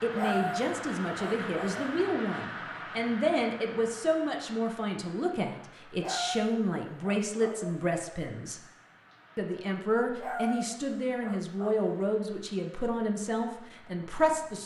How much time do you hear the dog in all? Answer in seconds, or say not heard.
5 s.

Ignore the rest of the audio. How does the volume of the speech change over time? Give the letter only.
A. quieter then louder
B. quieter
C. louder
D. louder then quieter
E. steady
E.